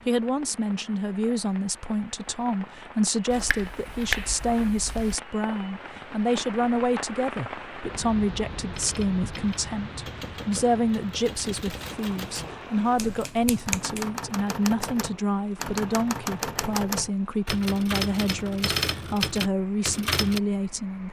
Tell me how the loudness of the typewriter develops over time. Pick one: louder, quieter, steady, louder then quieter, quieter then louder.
louder.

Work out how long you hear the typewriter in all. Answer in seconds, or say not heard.
12 s.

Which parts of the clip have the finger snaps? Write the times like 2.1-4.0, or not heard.
3.3-5.2, 12.9-14.1.